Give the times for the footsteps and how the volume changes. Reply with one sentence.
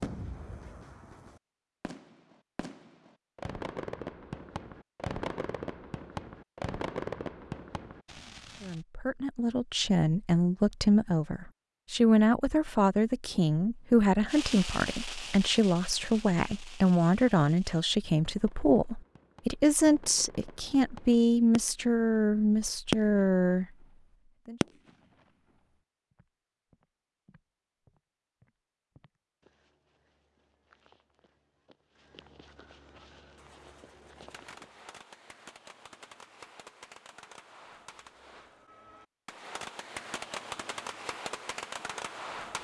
The footsteps can be heard from 26.1 to 34.9 s, getting louder.